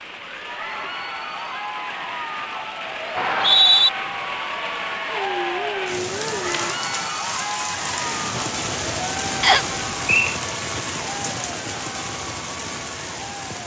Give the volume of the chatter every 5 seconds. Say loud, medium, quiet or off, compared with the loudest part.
loud, loud, medium.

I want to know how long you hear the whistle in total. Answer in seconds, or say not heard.
2 s.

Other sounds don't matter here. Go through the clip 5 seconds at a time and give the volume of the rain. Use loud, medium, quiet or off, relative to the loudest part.
medium, loud, loud.